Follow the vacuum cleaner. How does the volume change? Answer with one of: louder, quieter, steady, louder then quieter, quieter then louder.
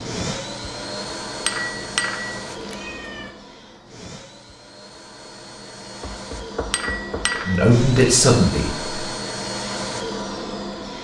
quieter then louder.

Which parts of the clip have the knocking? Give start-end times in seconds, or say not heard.
6.0-7.4.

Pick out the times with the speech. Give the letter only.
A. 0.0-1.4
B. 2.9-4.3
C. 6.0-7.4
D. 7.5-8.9
D.